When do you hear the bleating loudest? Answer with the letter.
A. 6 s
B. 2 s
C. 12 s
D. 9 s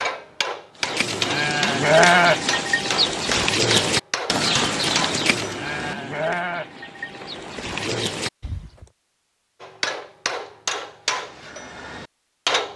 B.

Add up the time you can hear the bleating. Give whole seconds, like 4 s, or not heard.
8 s.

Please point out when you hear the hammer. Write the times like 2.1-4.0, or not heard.
0.0-6.0, 9.6-12.7.